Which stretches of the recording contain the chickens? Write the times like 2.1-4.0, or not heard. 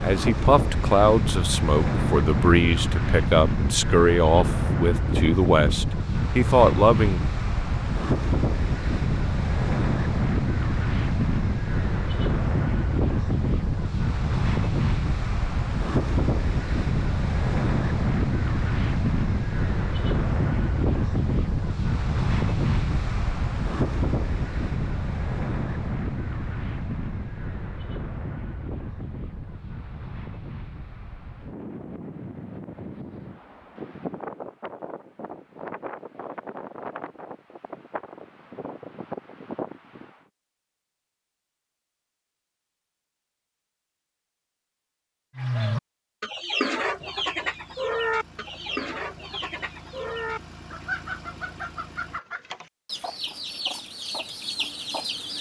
45.4-55.3.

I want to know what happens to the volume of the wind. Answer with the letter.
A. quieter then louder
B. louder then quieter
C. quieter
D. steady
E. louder
C.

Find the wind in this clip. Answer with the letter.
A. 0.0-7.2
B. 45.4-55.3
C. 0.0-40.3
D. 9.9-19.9
C.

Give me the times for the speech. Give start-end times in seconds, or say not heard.
0.0-7.2.